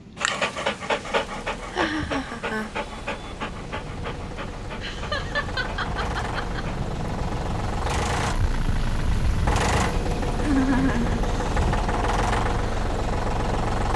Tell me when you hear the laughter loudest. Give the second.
11 s.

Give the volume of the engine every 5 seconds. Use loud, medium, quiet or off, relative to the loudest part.
quiet, loud, loud.